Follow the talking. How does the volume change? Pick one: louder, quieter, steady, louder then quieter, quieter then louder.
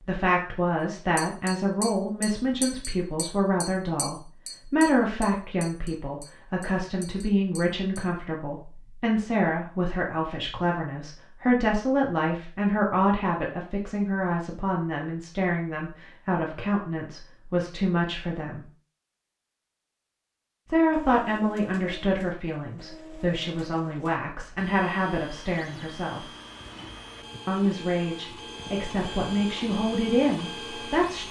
steady.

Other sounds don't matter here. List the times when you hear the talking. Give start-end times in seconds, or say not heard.
0.1-18.6, 20.6-26.2, 27.4-31.2.